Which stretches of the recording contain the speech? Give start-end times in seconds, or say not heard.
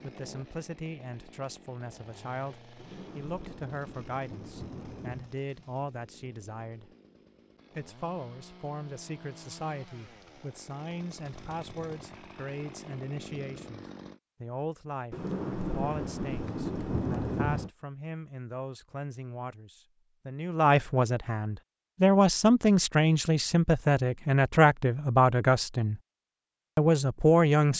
0.0-6.9, 7.8-26.0, 26.8-27.7.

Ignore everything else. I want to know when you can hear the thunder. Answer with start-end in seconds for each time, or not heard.
2.8-5.3, 15.1-17.7.